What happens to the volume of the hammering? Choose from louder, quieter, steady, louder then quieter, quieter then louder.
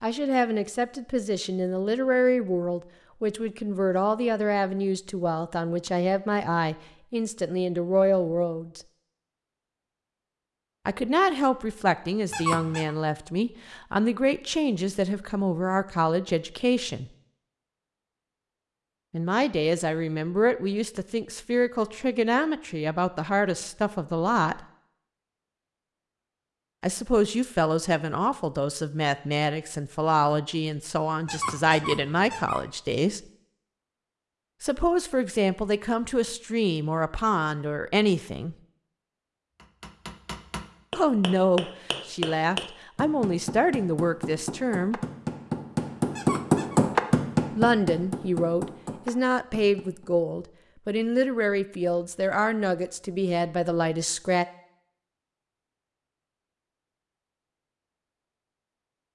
louder then quieter.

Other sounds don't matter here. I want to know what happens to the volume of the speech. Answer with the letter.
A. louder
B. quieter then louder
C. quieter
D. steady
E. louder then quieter
D.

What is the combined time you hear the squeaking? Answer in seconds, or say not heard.
3 s.